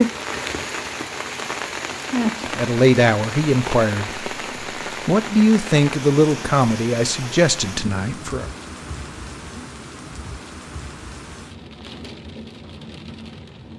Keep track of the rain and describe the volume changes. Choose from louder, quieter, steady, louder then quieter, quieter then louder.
quieter.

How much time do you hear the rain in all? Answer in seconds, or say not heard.
14 s.